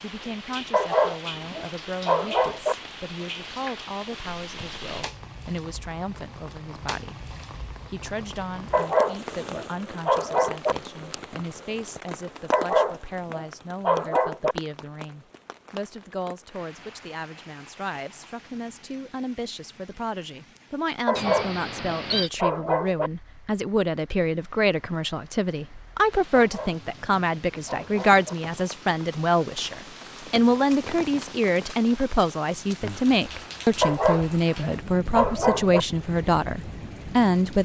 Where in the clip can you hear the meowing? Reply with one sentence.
The meowing can be heard from 21.1 to 22.3 s.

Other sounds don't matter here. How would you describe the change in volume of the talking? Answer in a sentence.
The volume of the talking goes up.